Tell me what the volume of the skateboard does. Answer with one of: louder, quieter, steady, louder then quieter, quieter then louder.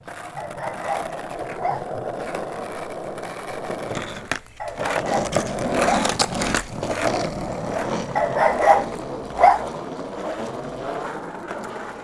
louder then quieter.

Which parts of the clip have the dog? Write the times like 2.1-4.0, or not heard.
0.3-1.9, 4.6-6.1, 8.2-9.6.